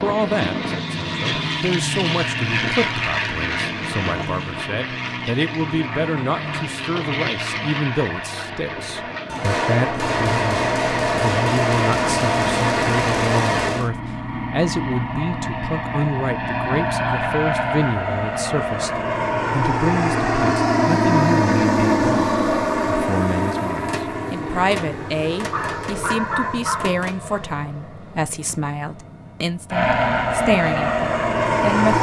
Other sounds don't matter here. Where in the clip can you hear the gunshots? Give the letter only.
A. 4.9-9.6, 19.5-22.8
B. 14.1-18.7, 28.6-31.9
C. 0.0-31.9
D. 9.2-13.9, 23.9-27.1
D.